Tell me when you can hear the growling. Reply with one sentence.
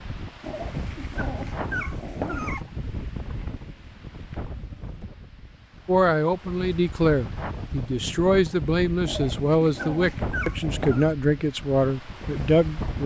You can hear the growling from 0.4 to 2.6 s and from 9.1 to 11.1 s.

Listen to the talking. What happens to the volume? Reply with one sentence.
The volume of the talking stays about the same.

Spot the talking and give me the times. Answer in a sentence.
You can hear the talking from 5.8 to 13.0 s.